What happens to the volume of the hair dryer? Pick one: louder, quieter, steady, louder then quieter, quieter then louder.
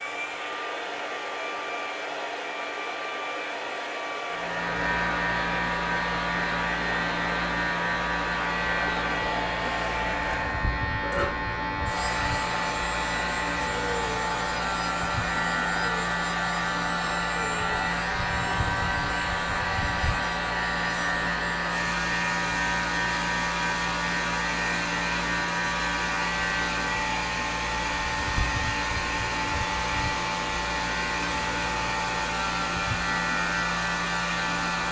steady.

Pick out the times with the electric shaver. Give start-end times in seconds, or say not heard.
4.2-34.8.